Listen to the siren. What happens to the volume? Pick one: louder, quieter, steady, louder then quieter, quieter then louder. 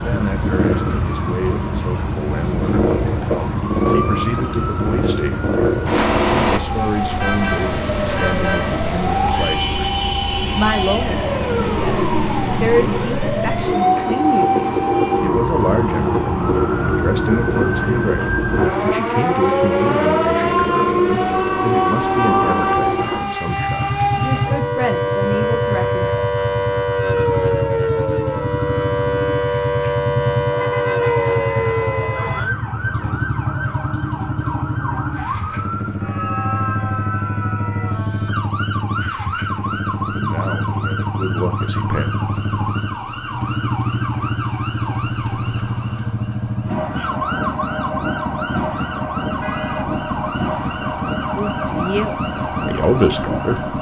quieter.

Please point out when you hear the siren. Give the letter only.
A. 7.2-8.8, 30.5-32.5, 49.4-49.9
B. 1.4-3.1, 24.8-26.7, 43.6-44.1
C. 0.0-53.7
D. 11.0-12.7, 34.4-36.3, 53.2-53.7
C.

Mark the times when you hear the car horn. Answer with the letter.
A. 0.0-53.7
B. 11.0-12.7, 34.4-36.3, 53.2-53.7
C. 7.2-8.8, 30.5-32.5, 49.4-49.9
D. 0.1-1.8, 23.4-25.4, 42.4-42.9
C.